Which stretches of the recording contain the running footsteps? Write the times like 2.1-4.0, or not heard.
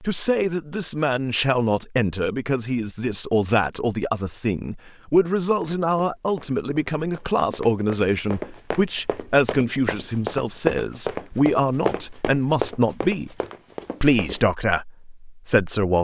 5.5-14.4.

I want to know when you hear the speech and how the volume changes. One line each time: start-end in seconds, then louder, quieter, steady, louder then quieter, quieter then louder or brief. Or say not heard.
0.0-13.3 steady
14.0-16.0 brief.